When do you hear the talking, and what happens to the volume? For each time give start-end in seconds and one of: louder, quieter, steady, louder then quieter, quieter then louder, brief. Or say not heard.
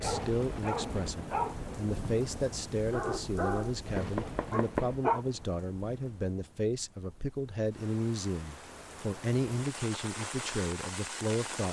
0.0-11.6 steady.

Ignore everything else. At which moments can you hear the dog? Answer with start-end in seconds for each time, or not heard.
0.0-5.2.